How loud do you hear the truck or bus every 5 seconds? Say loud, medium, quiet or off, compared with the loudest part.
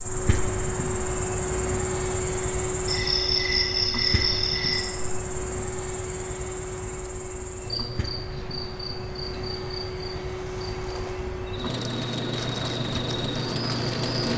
loud, medium, loud.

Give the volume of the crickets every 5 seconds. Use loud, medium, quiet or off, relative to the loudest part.
loud, medium, medium.